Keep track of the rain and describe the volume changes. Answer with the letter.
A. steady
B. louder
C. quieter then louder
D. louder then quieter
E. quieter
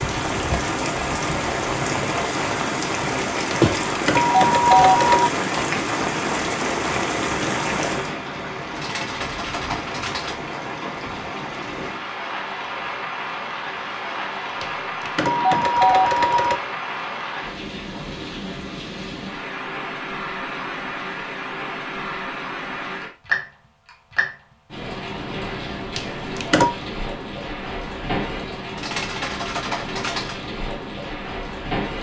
E.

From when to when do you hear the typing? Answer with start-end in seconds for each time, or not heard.
8.8-10.4, 28.8-30.4.